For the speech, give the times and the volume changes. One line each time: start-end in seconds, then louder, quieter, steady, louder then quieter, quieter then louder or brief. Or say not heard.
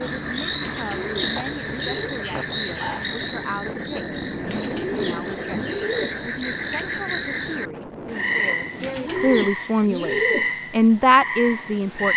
0.1-12.1 louder.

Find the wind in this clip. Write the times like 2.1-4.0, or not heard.
0.0-9.5.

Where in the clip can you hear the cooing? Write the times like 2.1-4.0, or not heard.
0.6-2.2, 4.5-6.2, 8.8-10.6.